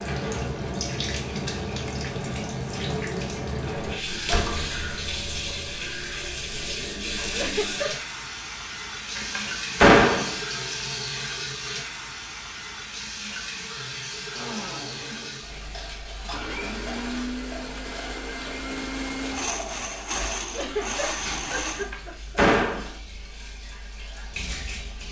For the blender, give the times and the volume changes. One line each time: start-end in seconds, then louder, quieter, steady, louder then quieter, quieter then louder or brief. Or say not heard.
14.3-21.9 louder.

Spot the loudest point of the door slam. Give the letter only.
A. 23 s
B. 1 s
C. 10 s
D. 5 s
C.